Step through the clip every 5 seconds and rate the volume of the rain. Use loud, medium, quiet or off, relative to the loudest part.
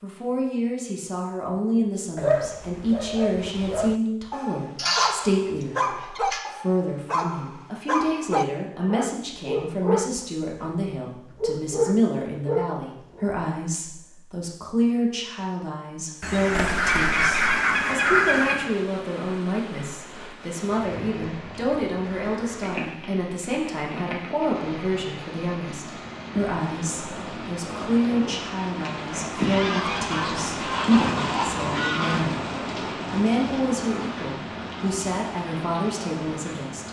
off, off, off, medium, medium, loud, loud, medium.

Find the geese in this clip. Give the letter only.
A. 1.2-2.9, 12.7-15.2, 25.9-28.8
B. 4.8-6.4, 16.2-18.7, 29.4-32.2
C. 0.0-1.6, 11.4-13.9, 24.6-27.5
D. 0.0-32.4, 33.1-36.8
B.